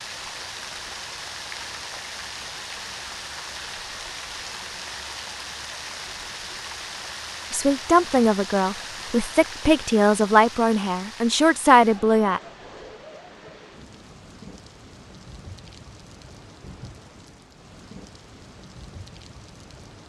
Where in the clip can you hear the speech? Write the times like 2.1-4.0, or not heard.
7.5-12.4.